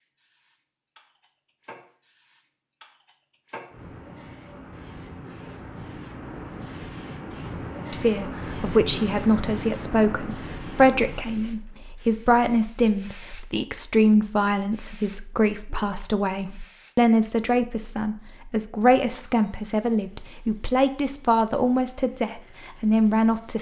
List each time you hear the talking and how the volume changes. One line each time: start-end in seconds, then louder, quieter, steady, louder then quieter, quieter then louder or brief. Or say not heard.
7.9-23.5 steady.